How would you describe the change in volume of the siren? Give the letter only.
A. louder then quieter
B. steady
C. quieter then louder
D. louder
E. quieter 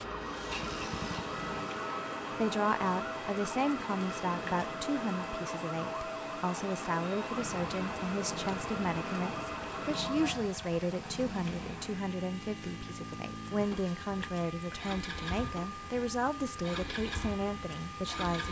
E.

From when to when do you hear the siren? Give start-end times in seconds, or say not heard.
0.0-18.2.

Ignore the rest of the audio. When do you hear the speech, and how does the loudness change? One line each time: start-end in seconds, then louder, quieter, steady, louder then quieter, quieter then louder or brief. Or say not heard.
2.3-18.4 steady.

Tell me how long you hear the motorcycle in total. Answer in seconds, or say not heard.
13 s.